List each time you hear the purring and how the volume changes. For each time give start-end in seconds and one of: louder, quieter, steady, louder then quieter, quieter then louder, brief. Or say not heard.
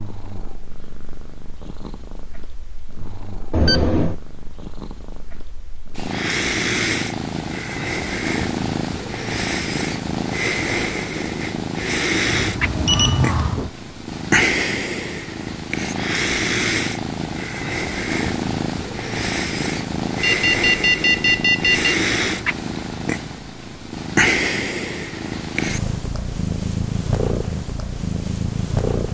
0.0-29.0 louder.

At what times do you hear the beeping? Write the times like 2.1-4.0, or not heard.
3.5-4.2, 12.3-13.7, 20.2-21.9.